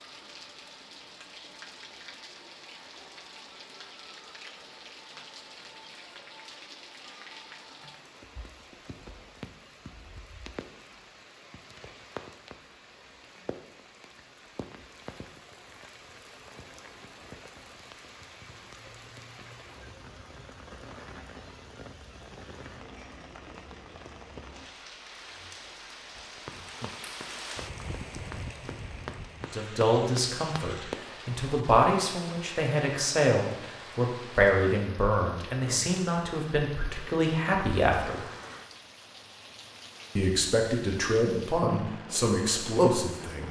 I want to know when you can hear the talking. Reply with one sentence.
The talking can be heard from 29.5 to 38.2 s and from 40.1 to 43.4 s.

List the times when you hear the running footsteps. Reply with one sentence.
The running footsteps can be heard from 26.1 to 31.1 s.